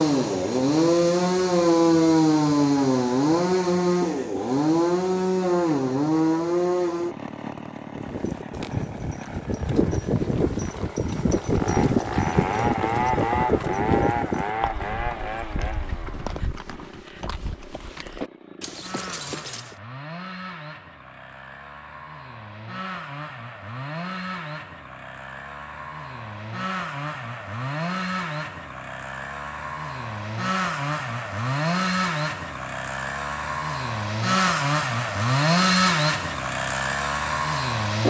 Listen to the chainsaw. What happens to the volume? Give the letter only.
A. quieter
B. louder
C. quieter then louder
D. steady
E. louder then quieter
C.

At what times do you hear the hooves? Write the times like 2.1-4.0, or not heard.
7.9-19.8.